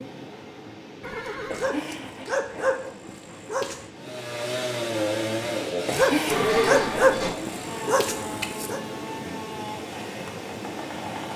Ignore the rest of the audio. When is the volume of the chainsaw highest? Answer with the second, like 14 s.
5 s.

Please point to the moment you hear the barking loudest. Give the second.
7 s.